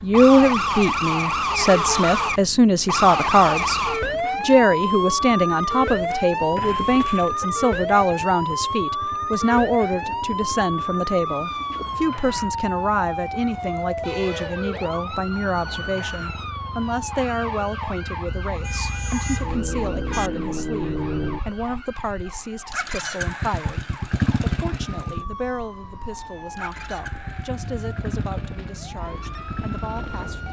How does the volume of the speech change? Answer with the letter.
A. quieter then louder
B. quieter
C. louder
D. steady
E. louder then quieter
B.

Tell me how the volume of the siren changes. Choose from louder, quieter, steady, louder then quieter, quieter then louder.
quieter.